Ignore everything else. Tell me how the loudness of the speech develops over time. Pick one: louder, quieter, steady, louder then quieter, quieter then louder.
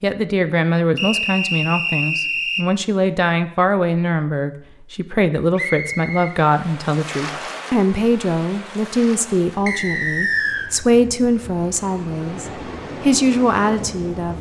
steady.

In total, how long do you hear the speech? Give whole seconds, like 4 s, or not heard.
14 s.